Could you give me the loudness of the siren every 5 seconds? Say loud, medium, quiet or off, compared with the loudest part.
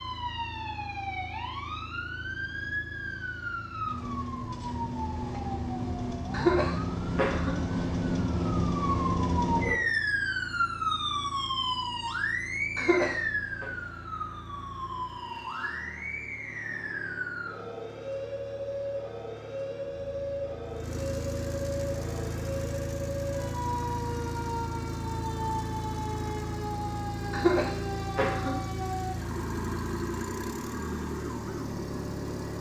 medium, loud, loud, medium, medium, medium, medium.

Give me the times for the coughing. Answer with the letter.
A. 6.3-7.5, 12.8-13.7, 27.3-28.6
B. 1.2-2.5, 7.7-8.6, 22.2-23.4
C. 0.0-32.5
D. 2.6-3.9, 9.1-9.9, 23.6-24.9
A.